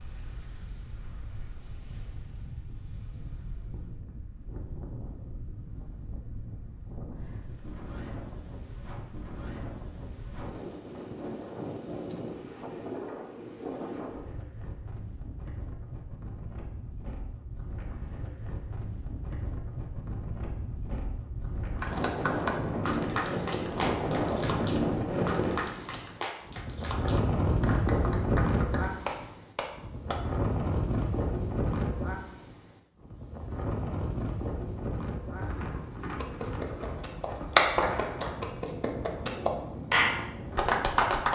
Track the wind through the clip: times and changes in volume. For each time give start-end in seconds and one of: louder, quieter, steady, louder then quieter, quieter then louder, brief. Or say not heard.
0.0-41.3 louder then quieter.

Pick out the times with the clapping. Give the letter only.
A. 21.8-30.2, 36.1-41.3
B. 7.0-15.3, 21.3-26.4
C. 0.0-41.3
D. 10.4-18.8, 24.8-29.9
A.